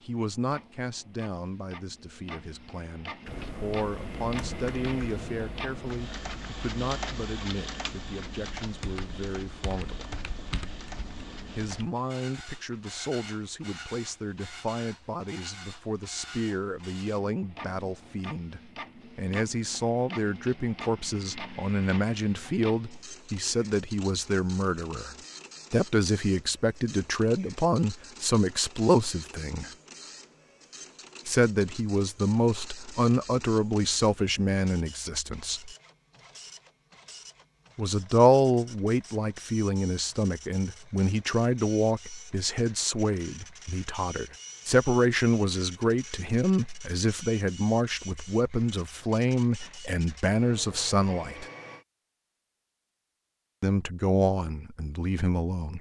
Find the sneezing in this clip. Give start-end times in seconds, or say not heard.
not heard.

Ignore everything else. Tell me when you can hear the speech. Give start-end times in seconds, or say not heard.
0.0-10.1, 11.6-29.7, 31.2-35.7, 37.8-51.5, 53.6-55.7.